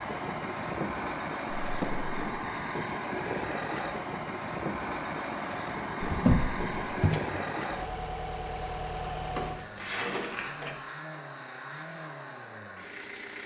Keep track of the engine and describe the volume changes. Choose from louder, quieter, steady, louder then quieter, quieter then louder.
quieter.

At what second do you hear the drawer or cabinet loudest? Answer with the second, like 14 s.
6 s.